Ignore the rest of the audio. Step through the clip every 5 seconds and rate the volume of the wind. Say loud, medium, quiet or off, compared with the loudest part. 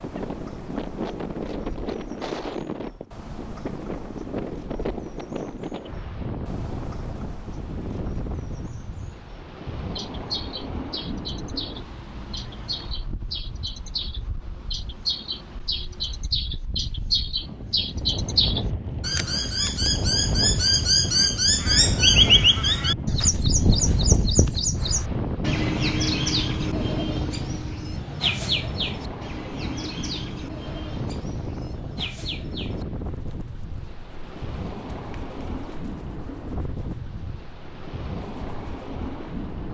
loud, medium, medium, medium, loud, loud, medium, medium.